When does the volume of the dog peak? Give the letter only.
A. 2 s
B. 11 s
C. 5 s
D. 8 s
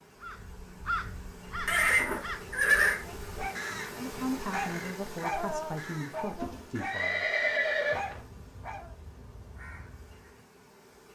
C.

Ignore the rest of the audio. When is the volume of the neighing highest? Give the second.
3 s.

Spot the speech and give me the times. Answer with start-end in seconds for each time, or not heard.
4.0-7.2.